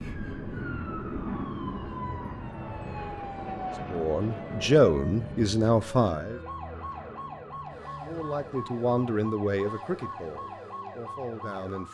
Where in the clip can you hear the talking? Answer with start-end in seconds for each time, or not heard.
3.9-6.4, 8.1-11.8.